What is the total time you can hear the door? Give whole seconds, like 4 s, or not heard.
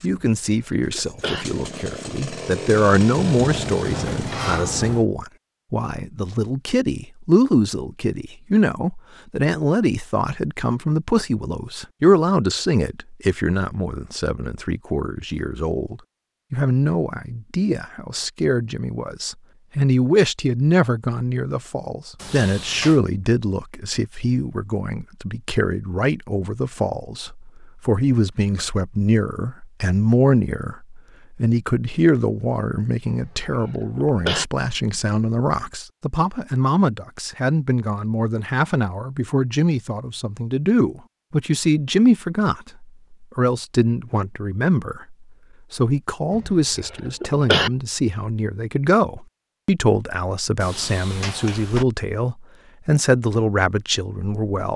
4 s.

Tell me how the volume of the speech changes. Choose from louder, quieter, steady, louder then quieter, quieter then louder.
steady.